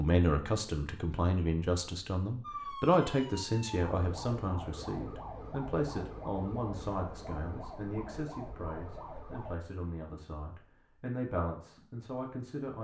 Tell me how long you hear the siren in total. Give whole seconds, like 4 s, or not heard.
7 s.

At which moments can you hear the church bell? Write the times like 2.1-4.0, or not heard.
not heard.